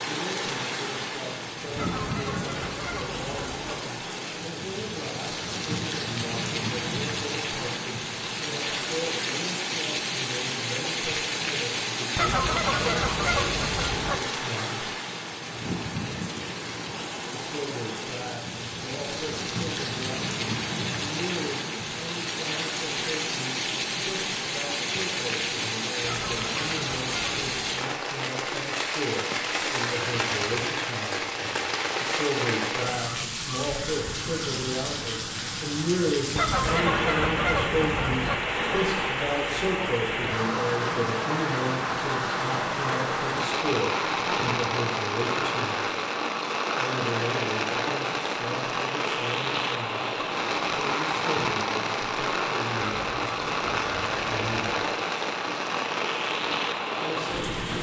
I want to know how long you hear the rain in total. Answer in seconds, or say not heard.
58 s.